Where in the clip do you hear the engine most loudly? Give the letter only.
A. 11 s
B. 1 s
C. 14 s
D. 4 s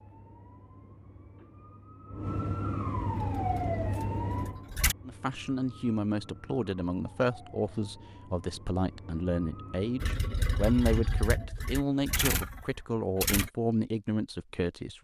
A.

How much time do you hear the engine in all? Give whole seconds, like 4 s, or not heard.
5 s.